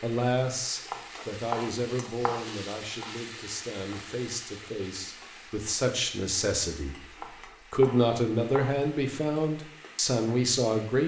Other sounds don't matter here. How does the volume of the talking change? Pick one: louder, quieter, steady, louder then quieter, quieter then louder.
quieter then louder.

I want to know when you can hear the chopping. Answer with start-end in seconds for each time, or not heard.
0.8-3.2, 7.2-8.8.